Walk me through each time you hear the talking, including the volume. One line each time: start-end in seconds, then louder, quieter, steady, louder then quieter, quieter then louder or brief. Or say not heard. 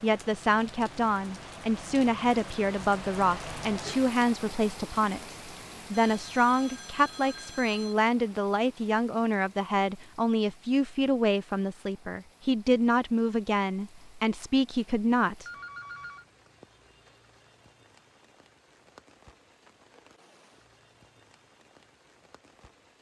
0.0-15.4 steady.